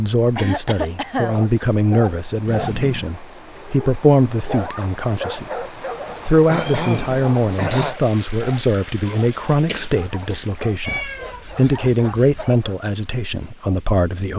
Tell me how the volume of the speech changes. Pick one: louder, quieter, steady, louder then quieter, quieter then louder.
steady.